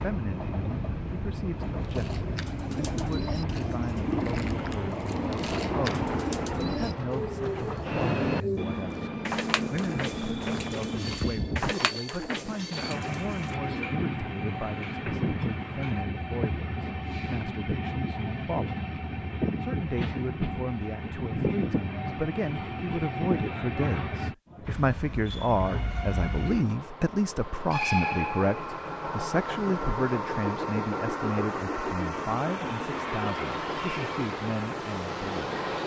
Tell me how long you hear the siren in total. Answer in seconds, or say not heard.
not heard.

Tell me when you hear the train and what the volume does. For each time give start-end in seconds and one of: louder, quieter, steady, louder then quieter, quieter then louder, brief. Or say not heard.
0.0-35.8 steady.